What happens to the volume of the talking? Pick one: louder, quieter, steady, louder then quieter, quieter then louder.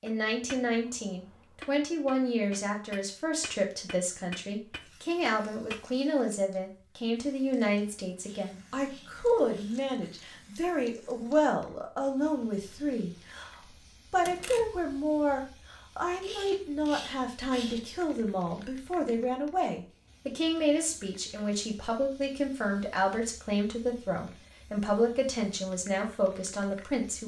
steady.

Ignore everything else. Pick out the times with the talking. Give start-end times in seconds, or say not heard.
0.0-27.2.